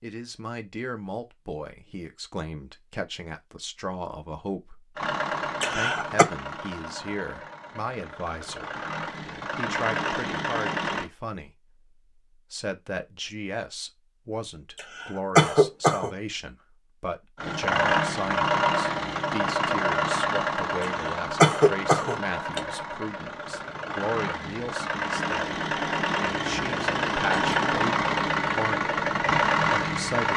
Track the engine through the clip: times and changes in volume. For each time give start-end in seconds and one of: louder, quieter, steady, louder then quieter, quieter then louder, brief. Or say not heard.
5.0-11.1 quieter then louder
17.4-30.3 quieter then louder.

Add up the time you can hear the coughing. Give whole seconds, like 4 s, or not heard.
4 s.